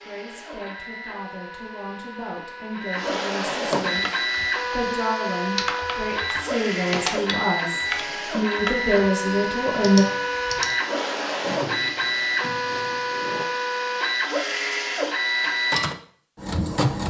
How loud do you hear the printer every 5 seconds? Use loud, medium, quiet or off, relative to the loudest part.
medium, loud, loud, loud.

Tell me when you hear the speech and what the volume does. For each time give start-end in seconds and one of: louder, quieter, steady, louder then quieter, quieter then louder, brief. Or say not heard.
0.0-10.1 louder.